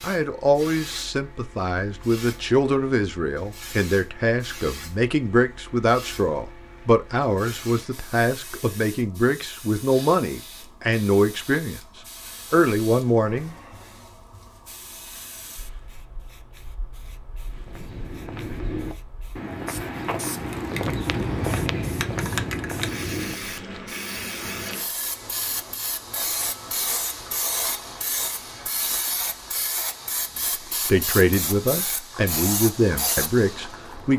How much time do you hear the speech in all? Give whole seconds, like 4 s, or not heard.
16 s.